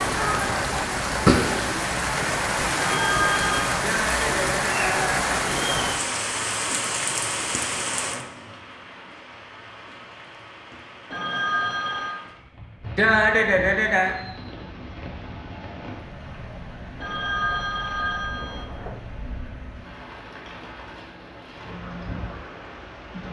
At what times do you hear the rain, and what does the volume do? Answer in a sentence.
The rain can be heard from 0.0 to 23.2 s, getting quieter.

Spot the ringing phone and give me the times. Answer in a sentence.
You can hear the ringing phone from 2.8 to 3.8 s, from 11.1 to 12.2 s and from 17.0 to 19.0 s.